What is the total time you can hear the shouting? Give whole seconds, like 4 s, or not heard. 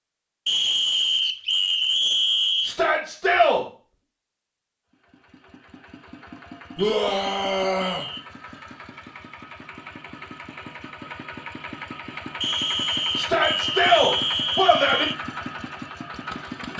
4 s.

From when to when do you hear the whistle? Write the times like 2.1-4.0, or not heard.
0.5-2.8, 6.8-8.2, 12.4-15.2.